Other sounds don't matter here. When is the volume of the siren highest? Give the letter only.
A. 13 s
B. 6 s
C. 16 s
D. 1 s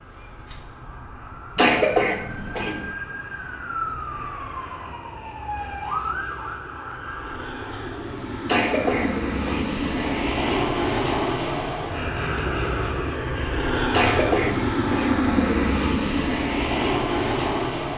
B.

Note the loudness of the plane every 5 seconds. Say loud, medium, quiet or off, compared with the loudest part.
quiet, medium, loud, loud.